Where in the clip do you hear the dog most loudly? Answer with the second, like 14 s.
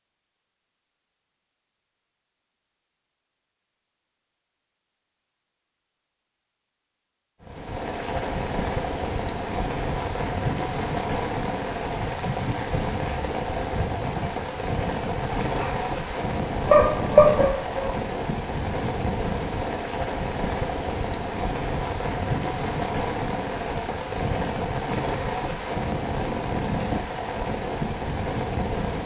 17 s.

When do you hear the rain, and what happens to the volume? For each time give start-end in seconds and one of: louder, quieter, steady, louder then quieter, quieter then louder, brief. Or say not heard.
7.4-29.0 steady.